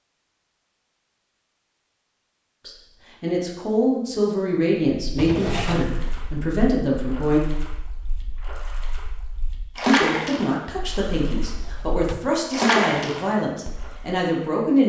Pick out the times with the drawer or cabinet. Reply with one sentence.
The drawer or cabinet can be heard from 5.2 to 6.0 s and from 11.4 to 12.4 s.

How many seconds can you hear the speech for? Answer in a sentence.
The speech can be heard for 10 seconds in total.